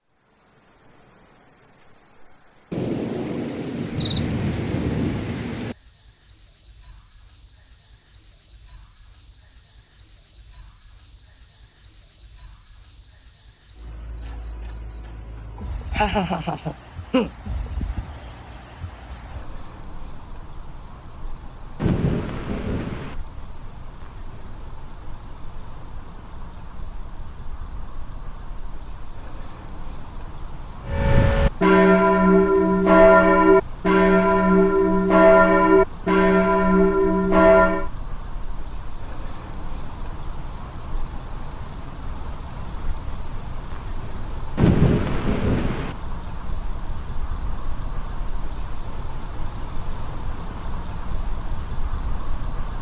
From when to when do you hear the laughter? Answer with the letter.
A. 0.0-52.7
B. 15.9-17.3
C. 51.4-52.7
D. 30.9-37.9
B.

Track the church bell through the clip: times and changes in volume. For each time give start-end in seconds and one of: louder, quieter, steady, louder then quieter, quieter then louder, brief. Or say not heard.
30.9-37.9 steady.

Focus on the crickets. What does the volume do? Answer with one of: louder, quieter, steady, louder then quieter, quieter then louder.
louder.